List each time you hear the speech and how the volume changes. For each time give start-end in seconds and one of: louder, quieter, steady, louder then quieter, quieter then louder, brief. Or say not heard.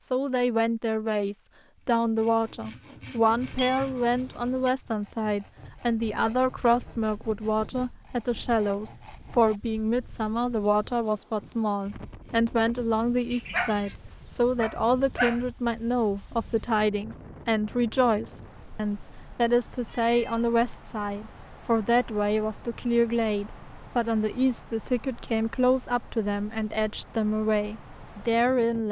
0.0-28.8 steady.